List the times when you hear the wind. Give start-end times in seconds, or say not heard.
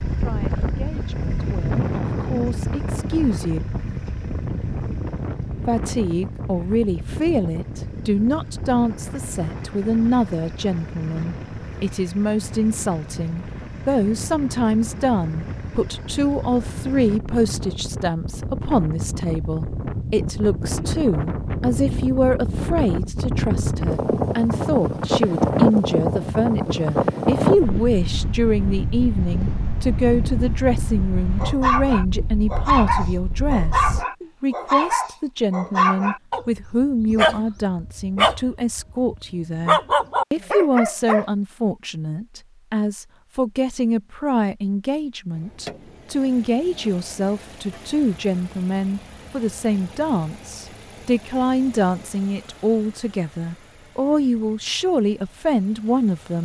0.0-34.0.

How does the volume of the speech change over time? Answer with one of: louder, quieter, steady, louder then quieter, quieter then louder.
steady.